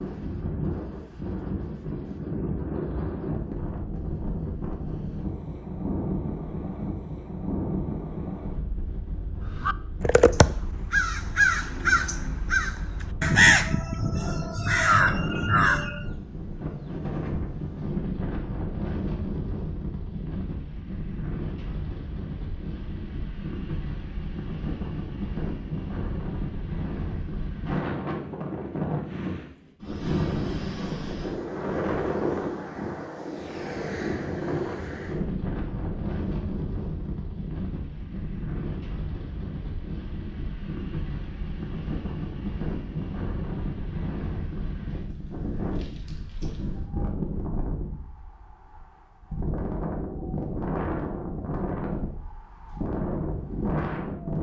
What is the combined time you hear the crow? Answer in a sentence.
You can hear the crow for 7 seconds altogether.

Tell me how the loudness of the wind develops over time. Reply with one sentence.
The loudness of the wind stays about the same.